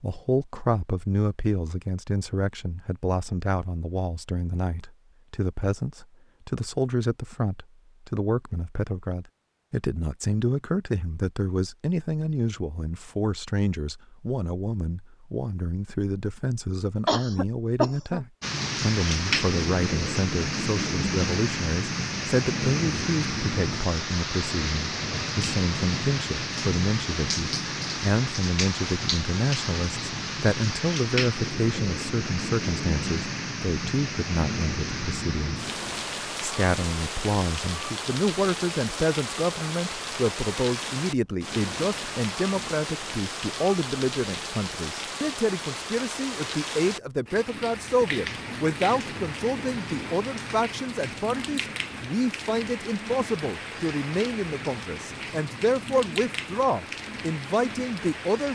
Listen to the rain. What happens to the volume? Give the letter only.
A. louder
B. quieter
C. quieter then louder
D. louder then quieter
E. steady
B.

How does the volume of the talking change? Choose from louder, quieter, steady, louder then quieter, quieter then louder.
steady.